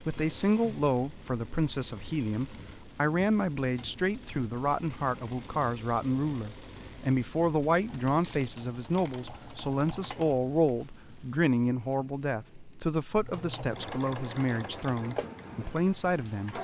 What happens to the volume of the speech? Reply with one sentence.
The loudness of the speech stays about the same.